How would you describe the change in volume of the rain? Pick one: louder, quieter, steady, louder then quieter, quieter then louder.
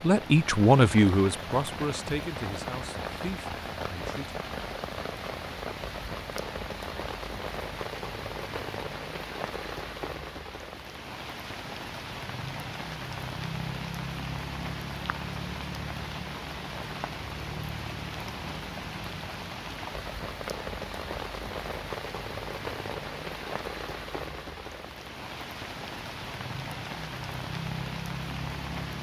steady.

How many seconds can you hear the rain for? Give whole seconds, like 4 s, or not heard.
29 s.